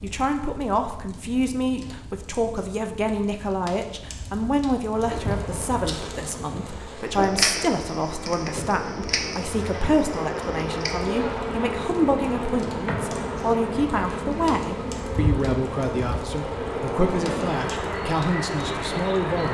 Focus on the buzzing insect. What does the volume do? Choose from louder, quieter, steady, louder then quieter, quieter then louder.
louder.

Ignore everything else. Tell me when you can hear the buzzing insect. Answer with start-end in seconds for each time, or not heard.
5.0-19.4.